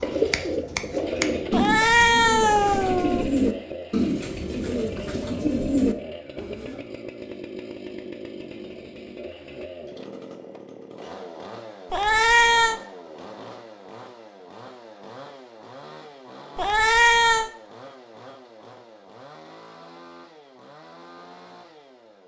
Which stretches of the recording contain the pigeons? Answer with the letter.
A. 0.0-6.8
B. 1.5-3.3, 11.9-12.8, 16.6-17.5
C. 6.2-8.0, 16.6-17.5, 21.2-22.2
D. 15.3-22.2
A.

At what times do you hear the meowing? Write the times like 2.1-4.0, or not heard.
1.5-3.3, 11.9-12.8, 16.6-17.5.